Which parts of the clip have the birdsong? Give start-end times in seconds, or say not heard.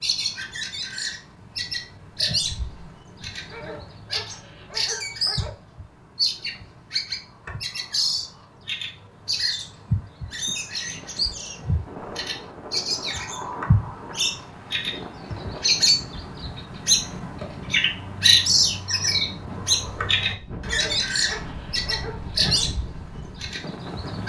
0.0-24.2.